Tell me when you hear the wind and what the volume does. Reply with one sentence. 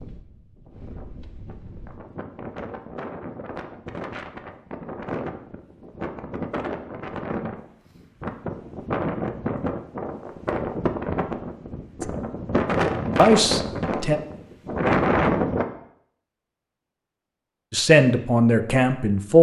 The wind can be heard from 0.0 to 15.7 s, getting louder.